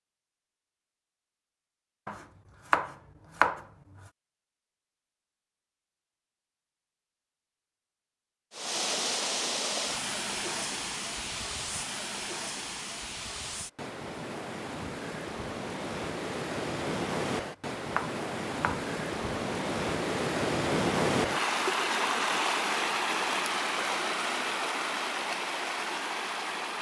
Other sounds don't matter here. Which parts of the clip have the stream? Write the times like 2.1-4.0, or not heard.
8.5-26.7.